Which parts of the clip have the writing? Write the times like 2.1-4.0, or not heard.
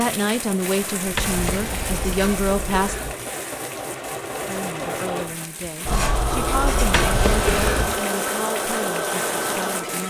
1.1-3.1, 5.8-7.8.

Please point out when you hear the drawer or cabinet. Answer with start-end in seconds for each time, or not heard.
1.1-2.2, 7.0-8.0.